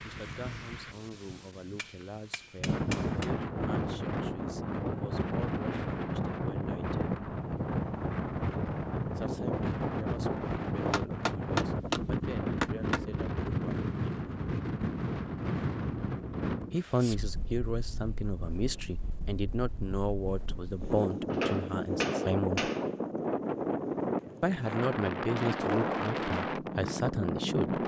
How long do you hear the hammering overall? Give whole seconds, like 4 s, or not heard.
5 s.